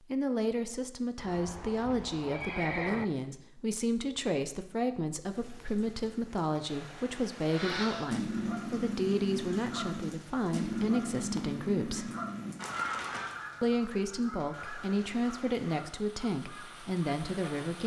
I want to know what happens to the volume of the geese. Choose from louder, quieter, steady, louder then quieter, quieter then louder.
quieter.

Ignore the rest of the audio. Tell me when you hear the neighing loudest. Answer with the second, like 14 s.
3 s.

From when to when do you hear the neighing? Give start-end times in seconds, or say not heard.
1.1-3.0.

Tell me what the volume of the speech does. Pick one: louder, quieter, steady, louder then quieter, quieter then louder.
steady.